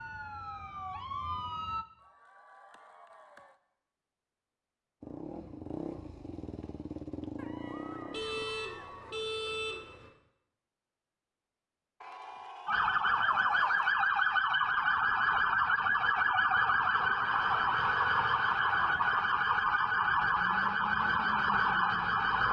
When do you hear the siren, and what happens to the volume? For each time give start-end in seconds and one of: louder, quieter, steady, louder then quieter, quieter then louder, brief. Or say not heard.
0.0-1.9 brief
12.7-22.4 steady.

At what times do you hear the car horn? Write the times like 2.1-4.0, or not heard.
8.1-10.1.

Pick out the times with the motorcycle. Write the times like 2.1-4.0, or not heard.
5.0-8.4.